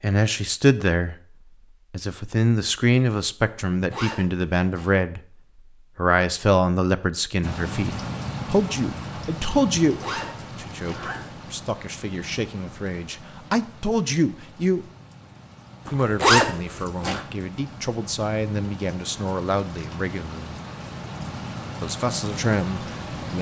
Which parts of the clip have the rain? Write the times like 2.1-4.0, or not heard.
7.4-23.3.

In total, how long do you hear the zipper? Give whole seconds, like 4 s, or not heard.
4 s.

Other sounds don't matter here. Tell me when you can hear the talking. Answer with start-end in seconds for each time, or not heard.
0.0-1.1, 1.9-5.2, 6.0-14.8, 15.9-20.6, 21.8-23.3.